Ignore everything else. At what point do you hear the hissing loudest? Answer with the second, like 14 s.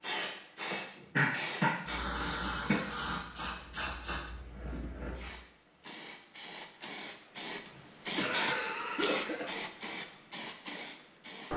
9 s.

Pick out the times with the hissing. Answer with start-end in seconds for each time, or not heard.
0.0-11.5.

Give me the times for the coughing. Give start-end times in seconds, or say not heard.
0.7-2.9, 7.7-9.5.